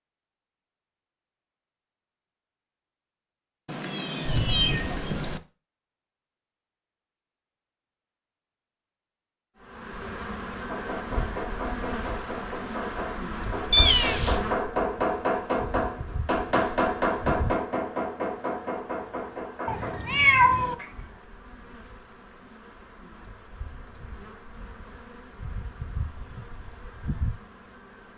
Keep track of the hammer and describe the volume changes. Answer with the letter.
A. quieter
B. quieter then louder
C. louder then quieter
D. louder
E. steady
C.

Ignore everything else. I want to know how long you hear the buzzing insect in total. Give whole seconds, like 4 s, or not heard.
18 s.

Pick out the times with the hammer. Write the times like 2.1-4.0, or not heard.
10.7-21.2.